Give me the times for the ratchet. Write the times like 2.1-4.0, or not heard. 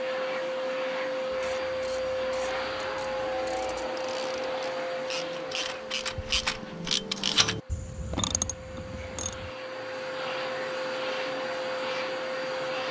1.3-9.5.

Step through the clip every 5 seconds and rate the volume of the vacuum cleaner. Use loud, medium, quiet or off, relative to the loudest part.
loud, medium, loud.